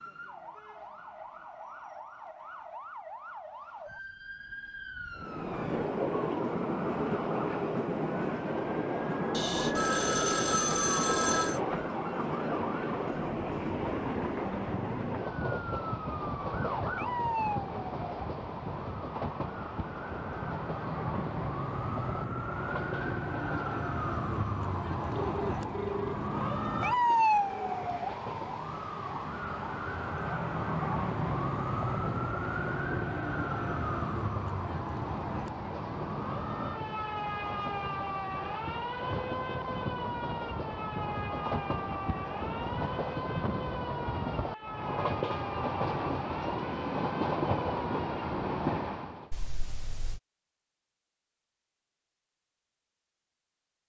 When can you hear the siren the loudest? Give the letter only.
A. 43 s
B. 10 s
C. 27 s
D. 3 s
C.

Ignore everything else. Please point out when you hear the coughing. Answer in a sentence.
You can't hear the coughing here.